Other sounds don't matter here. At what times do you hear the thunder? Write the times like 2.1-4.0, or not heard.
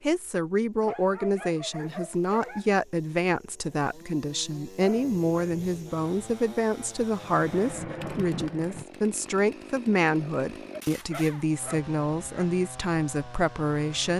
7.2-8.8.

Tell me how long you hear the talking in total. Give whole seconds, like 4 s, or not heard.
14 s.